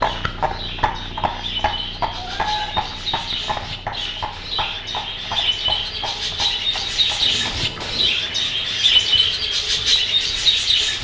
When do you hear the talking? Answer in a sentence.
You can't hear the talking here.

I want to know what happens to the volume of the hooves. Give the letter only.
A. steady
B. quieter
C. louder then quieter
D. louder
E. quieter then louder
B.